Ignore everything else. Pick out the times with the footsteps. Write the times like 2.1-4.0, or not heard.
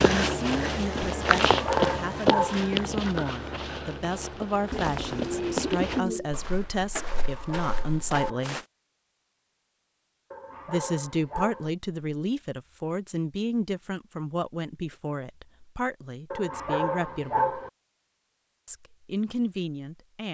0.0-8.6.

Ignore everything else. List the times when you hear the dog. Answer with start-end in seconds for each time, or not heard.
1.5-2.7, 7.1-8.5, 10.3-11.7, 16.3-17.7.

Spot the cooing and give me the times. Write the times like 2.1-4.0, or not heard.
4.7-6.3.